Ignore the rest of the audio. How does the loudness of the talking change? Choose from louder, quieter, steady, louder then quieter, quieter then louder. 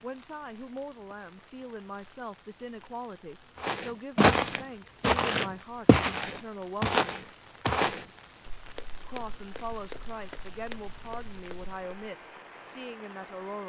steady.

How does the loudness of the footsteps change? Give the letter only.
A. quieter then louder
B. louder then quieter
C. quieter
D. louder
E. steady
C.